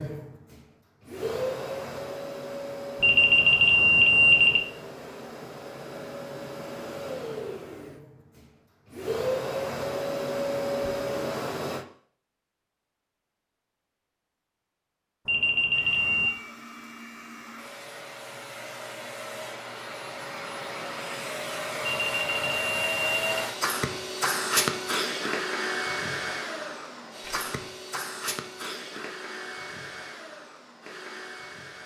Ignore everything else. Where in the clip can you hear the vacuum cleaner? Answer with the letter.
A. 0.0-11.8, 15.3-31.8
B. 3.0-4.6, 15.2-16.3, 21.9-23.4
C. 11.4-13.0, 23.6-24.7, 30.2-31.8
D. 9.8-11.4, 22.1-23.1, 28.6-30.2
A.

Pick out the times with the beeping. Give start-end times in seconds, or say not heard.
3.0-4.6, 15.2-16.3, 21.9-23.4.